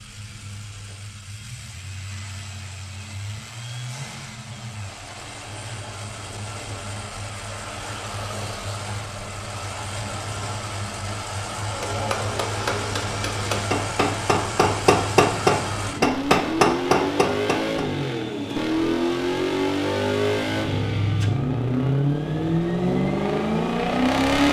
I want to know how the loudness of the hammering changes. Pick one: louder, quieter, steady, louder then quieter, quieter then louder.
louder.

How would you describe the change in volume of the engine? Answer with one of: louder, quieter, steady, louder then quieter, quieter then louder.
louder.